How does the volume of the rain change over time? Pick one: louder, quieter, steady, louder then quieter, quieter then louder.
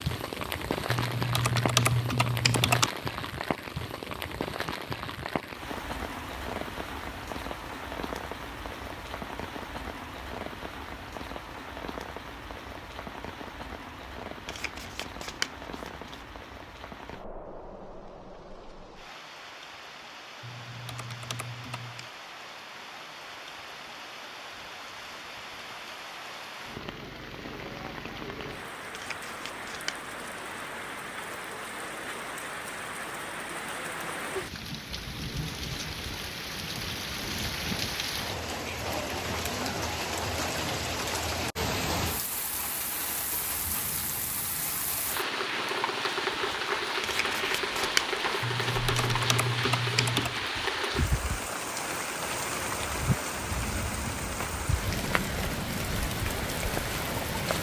quieter then louder.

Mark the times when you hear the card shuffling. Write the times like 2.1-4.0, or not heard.
14.4-16.2, 28.9-30.1, 47.0-49.2.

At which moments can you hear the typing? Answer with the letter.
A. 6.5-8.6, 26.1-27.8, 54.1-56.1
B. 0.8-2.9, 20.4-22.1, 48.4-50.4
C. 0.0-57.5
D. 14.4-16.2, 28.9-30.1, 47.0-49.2
B.